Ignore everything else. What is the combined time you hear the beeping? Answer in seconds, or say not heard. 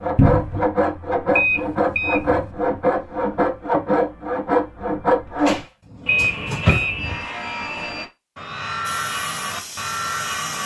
2 s.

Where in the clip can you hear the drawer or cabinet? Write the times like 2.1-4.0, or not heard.
0.1-0.7, 5.4-6.9.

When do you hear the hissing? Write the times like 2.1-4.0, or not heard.
8.8-10.6.